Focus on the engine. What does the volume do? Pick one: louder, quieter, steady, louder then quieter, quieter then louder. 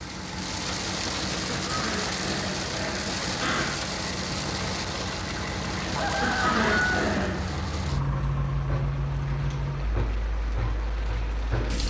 louder.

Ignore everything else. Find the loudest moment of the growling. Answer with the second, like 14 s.
7 s.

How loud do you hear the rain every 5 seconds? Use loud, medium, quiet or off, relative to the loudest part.
loud, medium, loud.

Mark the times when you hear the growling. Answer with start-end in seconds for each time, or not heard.
1.6-3.8, 6.2-7.5.